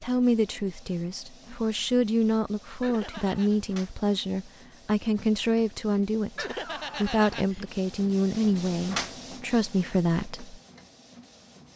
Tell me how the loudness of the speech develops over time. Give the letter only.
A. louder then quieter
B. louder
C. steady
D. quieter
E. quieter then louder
C.